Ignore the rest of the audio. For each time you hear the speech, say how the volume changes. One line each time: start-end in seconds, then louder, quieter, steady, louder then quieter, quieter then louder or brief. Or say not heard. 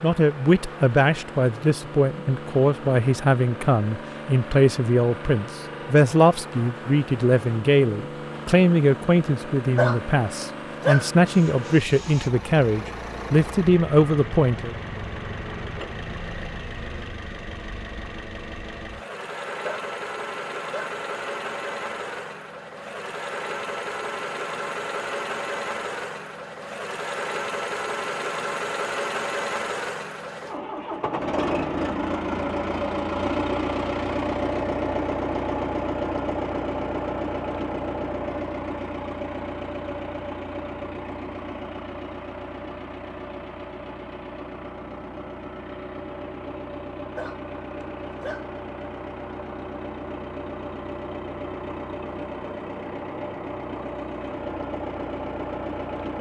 0.0-14.8 steady.